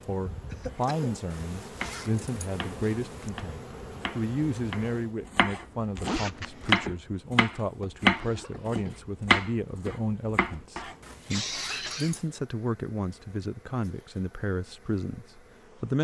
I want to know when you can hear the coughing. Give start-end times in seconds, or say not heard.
0.5-1.2, 8.0-9.1, 11.2-12.2.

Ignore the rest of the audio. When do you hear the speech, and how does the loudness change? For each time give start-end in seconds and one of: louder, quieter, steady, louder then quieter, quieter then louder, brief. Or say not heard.
0.1-15.9 steady.